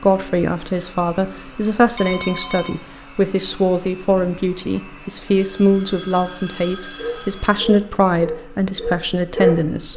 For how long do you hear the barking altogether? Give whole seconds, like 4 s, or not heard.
3 s.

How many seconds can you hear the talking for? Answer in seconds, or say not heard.
10 s.